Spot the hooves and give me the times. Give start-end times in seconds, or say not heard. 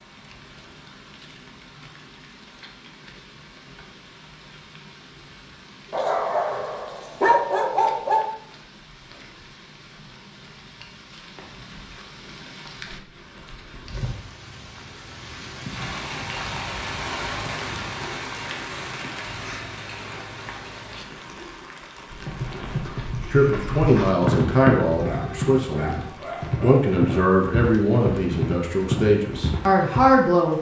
22.1-30.1.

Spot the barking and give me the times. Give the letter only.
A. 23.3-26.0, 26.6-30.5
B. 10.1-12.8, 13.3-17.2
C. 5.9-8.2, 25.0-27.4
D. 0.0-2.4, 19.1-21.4
C.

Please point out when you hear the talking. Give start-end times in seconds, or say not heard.
23.3-26.0, 26.6-30.5.